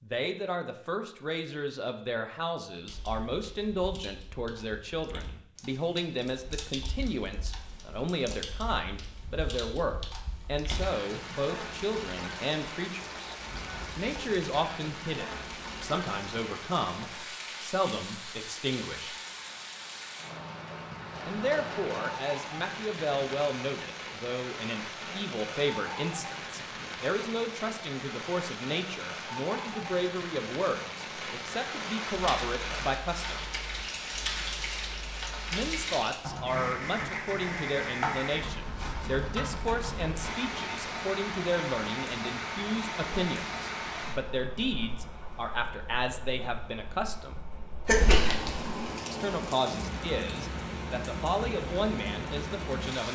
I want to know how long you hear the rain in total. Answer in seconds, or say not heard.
42 s.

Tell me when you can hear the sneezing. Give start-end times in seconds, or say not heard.
47.9-48.7.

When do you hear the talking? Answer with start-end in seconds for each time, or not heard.
0.0-13.3, 13.9-19.2, 21.2-33.5, 35.5-47.5, 49.1-53.0.